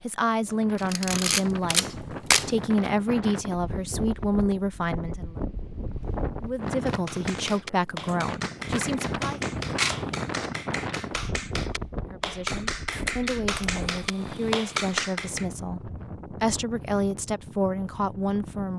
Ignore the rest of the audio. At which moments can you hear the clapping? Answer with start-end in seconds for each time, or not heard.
6.8-15.4.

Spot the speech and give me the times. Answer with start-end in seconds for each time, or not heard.
0.0-5.3, 6.4-9.4, 11.9-18.7.